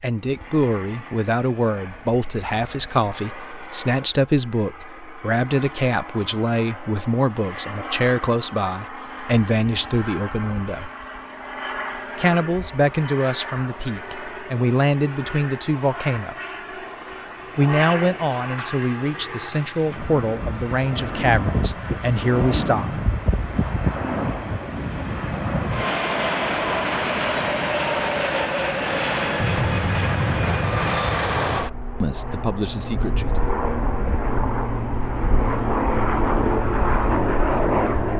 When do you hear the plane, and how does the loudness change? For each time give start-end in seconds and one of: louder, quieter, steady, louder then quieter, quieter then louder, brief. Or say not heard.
0.1-38.1 louder.